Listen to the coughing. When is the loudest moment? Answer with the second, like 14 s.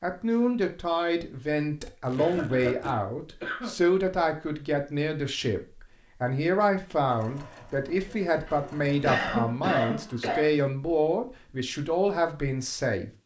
9 s.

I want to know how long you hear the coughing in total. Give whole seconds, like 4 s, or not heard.
4 s.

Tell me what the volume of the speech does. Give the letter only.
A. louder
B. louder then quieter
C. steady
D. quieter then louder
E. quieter
C.